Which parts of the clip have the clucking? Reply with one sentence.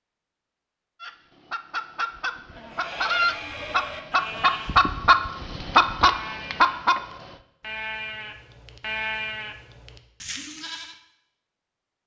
The clucking can be heard from 1.0 to 7.3 s.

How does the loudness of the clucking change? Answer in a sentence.
The loudness of the clucking goes up.